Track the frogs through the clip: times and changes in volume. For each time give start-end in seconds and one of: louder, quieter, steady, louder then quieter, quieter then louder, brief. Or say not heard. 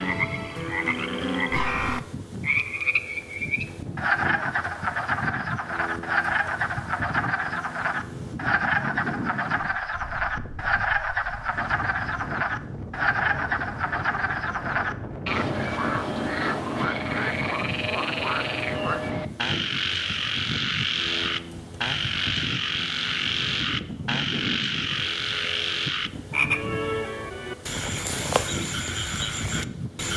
0.0-30.1 steady.